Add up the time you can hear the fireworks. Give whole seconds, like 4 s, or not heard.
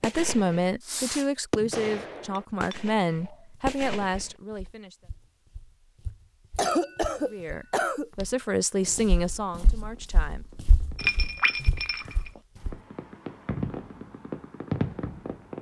10 s.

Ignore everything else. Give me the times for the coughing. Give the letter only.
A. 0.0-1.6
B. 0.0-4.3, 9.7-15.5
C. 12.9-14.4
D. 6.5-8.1
D.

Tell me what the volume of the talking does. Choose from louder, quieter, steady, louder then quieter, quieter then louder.
quieter.